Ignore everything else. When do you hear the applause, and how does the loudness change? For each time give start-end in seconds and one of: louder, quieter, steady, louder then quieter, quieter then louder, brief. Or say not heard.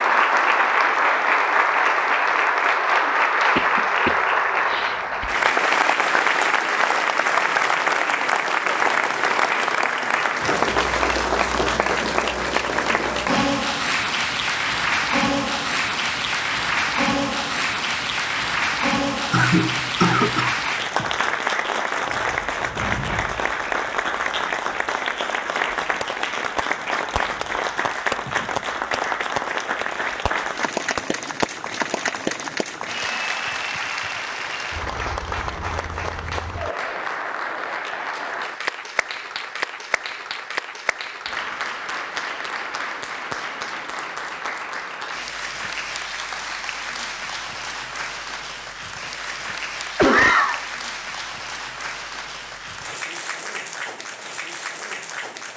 0.0-55.5 quieter.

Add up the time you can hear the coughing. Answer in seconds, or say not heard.
4 s.